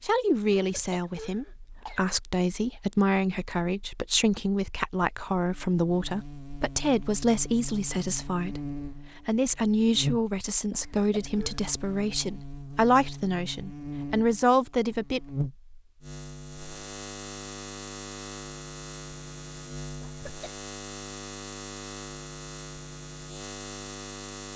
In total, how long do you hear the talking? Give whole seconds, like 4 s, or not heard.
15 s.